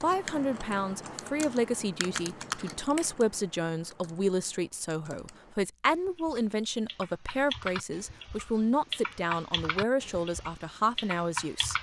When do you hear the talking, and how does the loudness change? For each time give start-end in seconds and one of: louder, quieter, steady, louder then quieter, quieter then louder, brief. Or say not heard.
0.0-11.7 steady.